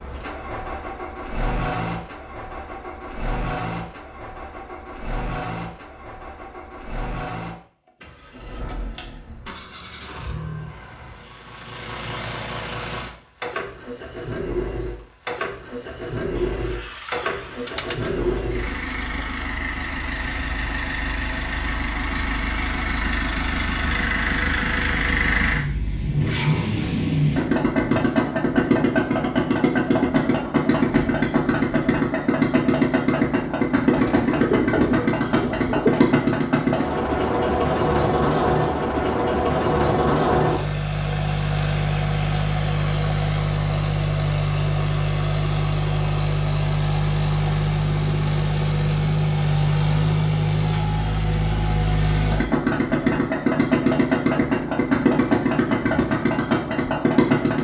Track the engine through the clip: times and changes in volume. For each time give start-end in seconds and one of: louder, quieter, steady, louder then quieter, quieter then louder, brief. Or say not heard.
0.0-57.5 louder.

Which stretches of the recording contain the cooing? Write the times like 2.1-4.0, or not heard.
16.4-19.3, 34.0-36.0.